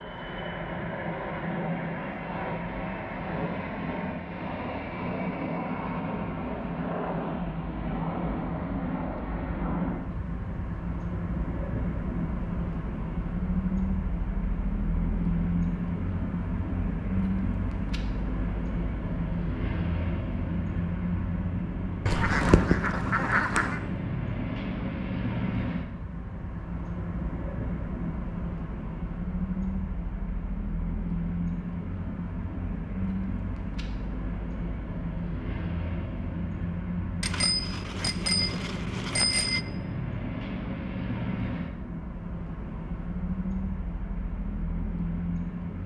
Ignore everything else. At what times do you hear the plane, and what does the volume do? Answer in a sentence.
You can hear the plane from 0.0 to 45.8 s, at a steady volume.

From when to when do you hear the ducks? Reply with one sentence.
You can hear the ducks from 22.1 to 23.8 s.